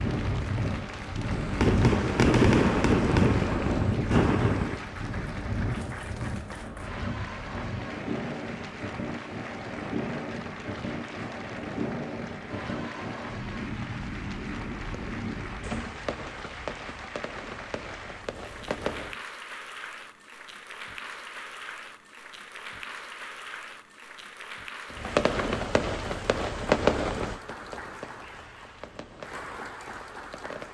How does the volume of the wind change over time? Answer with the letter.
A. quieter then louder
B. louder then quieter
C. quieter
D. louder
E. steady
C.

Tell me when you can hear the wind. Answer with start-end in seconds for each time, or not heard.
0.0-16.0.